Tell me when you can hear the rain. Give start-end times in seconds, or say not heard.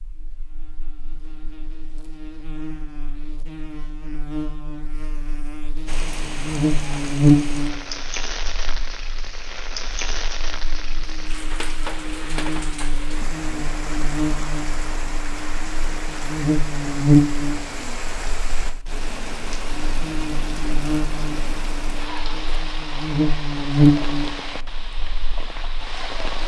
5.8-26.4.